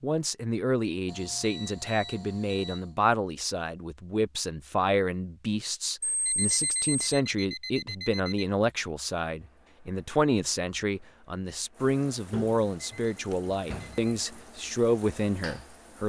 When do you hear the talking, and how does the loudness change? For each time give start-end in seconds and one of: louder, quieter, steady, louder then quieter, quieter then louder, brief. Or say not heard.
0.0-16.0 steady.